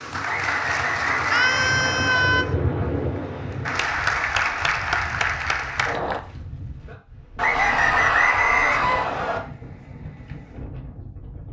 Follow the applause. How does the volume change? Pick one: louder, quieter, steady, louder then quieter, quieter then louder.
quieter then louder.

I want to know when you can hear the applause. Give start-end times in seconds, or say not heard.
0.0-6.2.